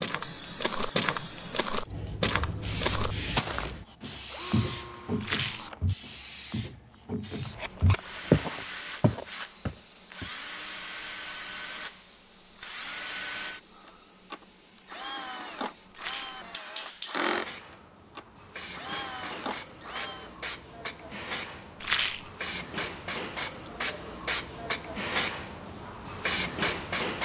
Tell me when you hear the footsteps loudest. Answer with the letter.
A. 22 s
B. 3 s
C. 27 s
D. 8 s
D.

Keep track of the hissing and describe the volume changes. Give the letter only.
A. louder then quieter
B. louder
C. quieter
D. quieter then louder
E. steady
D.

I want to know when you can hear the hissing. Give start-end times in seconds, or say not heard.
0.0-27.2.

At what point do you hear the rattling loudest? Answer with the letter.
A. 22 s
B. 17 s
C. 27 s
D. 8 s
A.